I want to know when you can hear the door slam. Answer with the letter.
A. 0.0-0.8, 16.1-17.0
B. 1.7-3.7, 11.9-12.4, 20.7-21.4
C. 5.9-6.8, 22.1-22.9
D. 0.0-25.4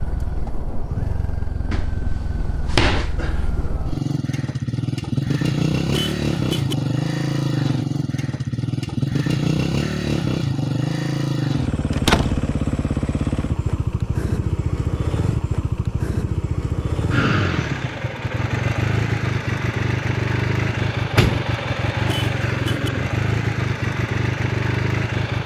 B.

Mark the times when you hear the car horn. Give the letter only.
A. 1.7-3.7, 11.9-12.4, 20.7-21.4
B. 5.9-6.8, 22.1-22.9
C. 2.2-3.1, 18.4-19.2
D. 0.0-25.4
B.